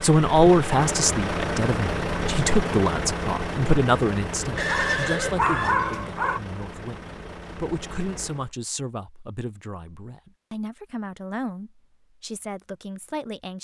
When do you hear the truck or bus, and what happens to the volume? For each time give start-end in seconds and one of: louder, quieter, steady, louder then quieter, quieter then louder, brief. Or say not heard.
0.0-8.5 quieter.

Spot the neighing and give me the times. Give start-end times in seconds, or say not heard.
4.5-5.8.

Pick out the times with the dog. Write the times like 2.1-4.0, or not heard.
4.5-6.4.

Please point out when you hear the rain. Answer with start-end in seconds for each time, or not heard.
not heard.